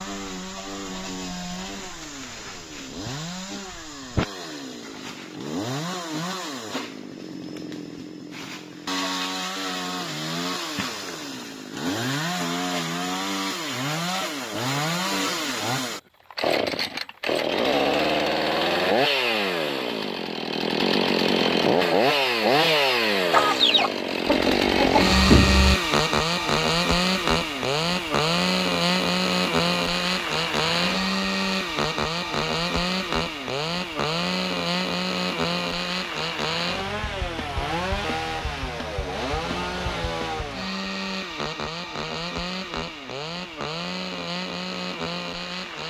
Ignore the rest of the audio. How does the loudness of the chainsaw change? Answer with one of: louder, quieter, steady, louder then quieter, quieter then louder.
louder then quieter.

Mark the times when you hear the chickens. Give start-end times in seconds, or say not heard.
23.3-25.8.